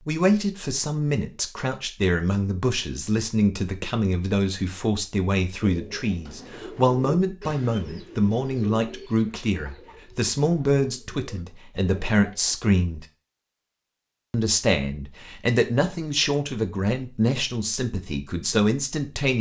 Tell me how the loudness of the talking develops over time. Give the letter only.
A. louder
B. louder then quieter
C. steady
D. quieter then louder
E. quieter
C.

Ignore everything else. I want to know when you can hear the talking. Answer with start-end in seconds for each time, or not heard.
0.1-13.1, 14.3-19.3.